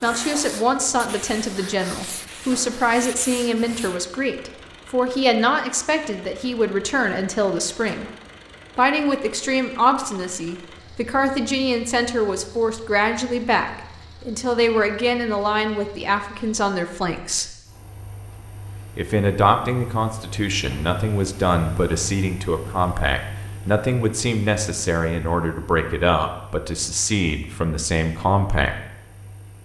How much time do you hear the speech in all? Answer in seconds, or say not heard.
27 s.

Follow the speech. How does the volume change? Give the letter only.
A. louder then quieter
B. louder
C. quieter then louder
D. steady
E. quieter
D.